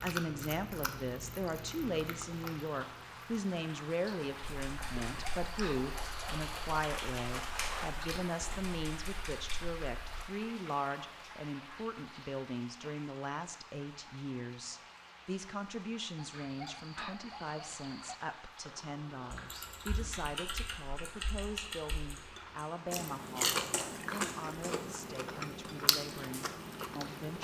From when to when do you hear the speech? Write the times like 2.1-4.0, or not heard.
0.0-27.3.